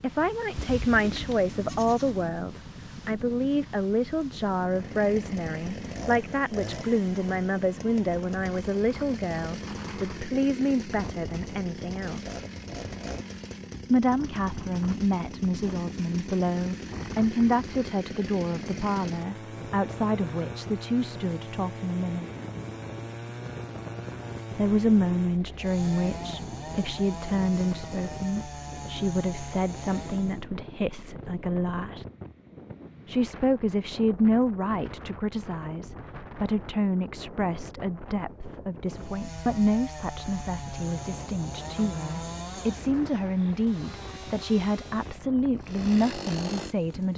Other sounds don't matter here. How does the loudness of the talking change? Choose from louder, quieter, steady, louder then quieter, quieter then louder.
steady.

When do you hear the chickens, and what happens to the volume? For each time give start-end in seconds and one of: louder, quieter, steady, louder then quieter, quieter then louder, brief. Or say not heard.
not heard.